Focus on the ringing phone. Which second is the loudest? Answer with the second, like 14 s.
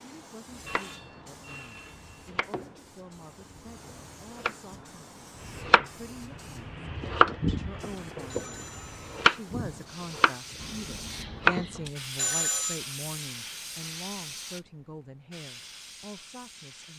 12 s.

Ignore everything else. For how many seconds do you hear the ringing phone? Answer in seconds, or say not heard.
4 s.